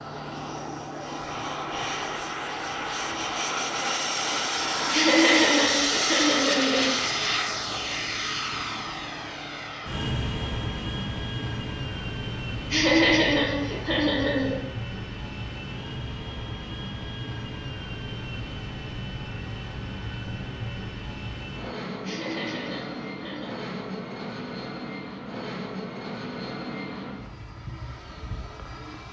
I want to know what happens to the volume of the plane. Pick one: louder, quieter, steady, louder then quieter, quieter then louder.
quieter.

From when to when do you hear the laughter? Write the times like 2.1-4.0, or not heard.
4.9-7.0, 12.7-14.7, 22.1-23.6.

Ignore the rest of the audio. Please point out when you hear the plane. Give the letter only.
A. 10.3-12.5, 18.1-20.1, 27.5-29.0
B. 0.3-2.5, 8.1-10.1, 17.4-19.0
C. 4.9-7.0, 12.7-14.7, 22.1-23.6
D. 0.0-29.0
D.